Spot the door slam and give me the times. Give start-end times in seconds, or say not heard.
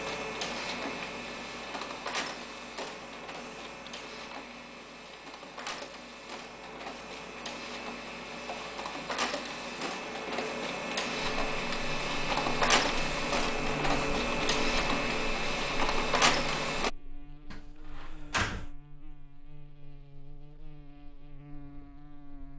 17.5-18.7.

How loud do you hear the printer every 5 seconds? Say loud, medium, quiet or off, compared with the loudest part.
medium, medium, loud, loud, off.